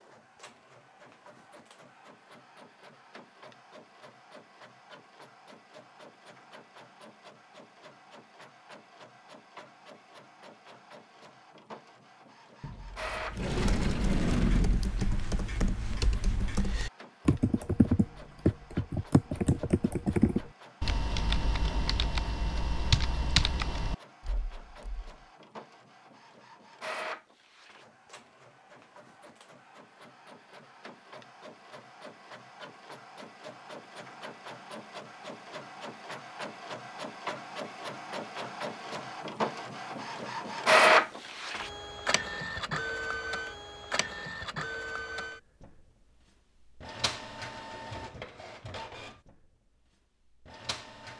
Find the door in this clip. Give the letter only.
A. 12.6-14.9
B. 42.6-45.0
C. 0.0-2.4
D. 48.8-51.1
A.